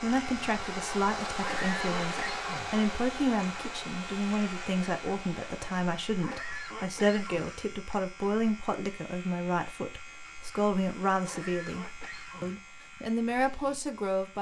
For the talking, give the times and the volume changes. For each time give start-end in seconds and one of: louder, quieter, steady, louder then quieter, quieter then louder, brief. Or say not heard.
0.0-14.3 steady.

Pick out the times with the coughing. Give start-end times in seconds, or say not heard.
1.4-2.7, 6.2-7.5, 11.2-12.6.